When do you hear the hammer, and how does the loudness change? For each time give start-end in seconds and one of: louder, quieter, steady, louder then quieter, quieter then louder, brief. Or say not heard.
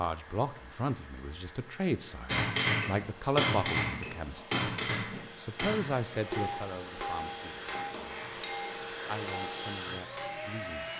2.2-10.7 quieter.